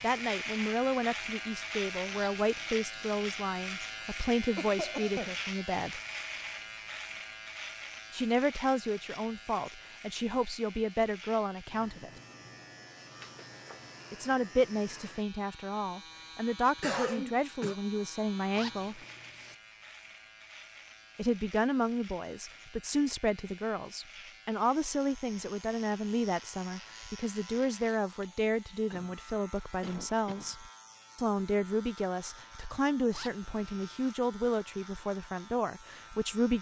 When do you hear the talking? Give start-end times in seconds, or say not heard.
0.0-6.0, 8.1-12.1, 14.1-19.0, 21.1-36.5.